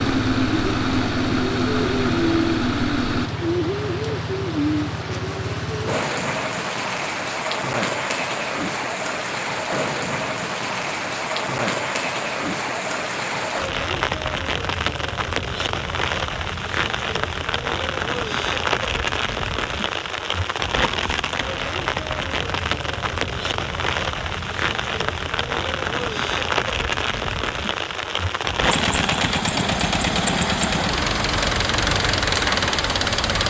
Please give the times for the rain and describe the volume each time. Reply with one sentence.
You can hear the rain from 0.0 to 33.4 s, at a steady volume.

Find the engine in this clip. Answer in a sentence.
The engine can be heard from 0.0 to 3.3 s and from 28.6 to 33.4 s.